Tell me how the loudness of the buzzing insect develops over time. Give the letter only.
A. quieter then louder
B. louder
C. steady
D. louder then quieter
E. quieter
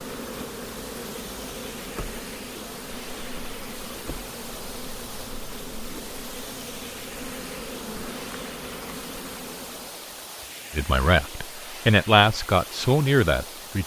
C.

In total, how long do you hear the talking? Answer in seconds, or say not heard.
3 s.